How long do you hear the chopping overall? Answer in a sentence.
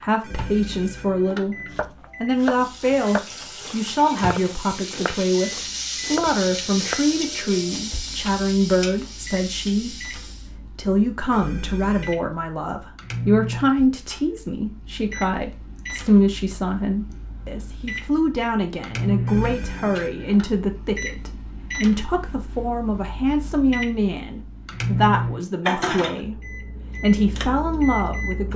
You can hear the chopping for 5 seconds altogether.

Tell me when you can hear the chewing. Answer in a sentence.
You can't hear the chewing here.